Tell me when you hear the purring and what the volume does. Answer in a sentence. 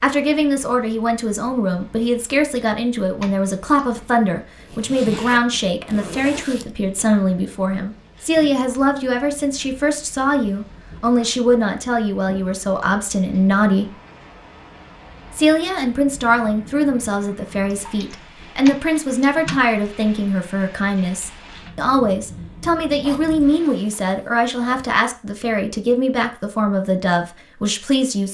The purring can't be heard in this clip.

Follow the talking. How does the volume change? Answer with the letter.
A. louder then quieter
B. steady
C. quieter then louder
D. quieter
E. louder
B.